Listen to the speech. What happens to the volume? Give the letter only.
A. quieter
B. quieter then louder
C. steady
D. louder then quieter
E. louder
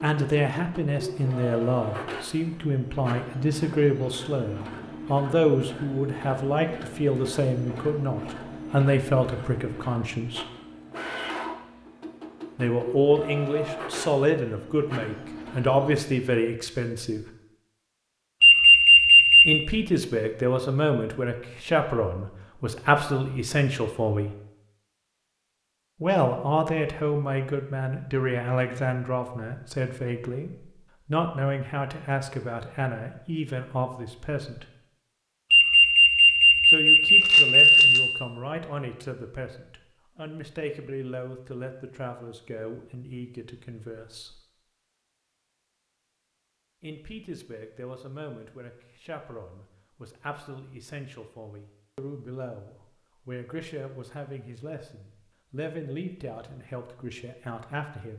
A.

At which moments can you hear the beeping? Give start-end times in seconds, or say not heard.
18.4-19.6, 35.5-37.9.